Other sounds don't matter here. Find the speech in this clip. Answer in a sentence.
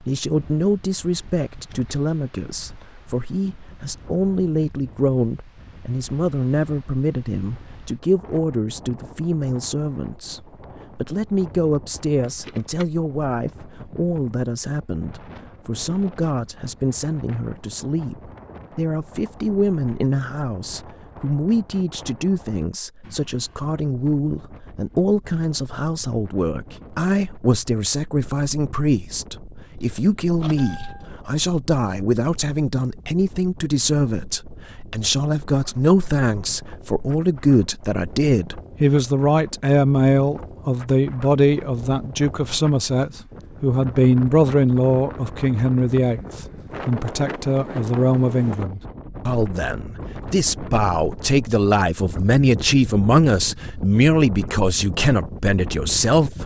You can hear the speech from 0.1 to 56.4 s.